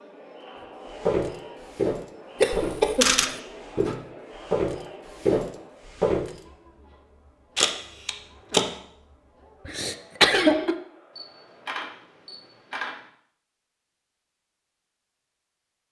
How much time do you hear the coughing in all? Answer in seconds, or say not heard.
2 s.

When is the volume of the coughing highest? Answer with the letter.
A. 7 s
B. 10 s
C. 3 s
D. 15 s
B.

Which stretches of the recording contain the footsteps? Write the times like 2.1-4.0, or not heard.
1.0-3.0, 3.6-6.4.